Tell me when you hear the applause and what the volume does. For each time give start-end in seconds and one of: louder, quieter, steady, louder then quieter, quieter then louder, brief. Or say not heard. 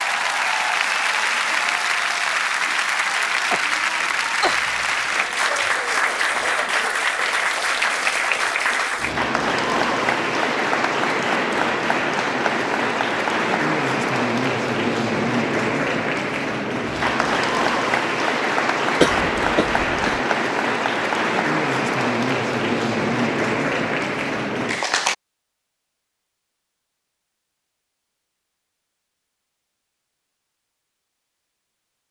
0.0-25.1 steady.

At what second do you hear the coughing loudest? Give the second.
19 s.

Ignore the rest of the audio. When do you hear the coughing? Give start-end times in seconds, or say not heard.
3.3-4.6, 19.0-20.2.